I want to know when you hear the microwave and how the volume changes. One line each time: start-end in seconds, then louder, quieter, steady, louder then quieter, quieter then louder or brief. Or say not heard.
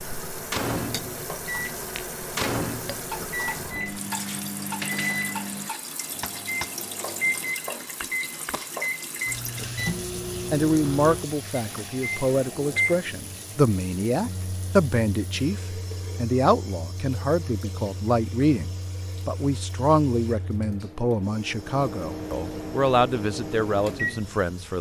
0.0-24.7 quieter then louder.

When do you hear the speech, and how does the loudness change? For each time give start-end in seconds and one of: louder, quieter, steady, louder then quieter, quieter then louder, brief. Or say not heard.
10.5-24.7 steady.